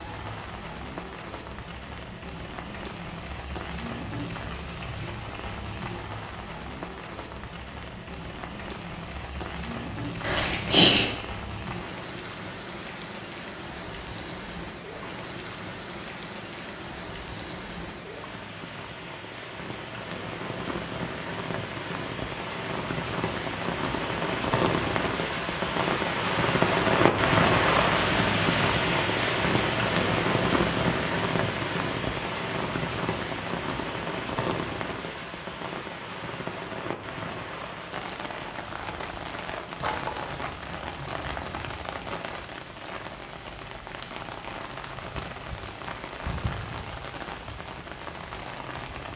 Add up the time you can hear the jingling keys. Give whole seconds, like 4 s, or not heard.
3 s.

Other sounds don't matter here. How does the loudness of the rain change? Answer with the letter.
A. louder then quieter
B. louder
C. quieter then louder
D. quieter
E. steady
A.